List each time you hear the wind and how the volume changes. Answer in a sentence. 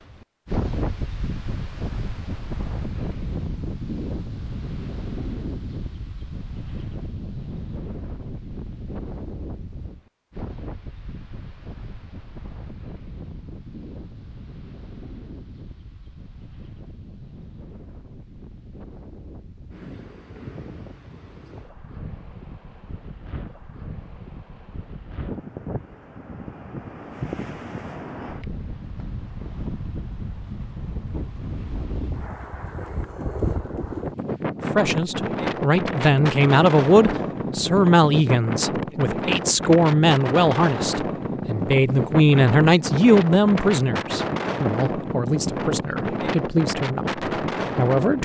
You can hear the wind from 0.0 to 48.2 s, getting quieter then louder.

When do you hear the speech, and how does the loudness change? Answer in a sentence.
You can hear the speech from 34.6 to 48.2 s, getting quieter.